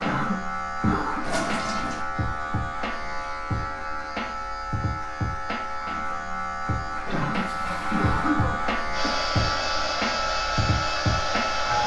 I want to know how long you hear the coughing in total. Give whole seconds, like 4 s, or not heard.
3 s.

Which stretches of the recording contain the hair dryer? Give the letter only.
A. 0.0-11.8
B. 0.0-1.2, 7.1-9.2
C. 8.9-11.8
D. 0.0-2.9
C.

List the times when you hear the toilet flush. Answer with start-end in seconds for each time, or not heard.
1.2-2.0, 7.0-8.3.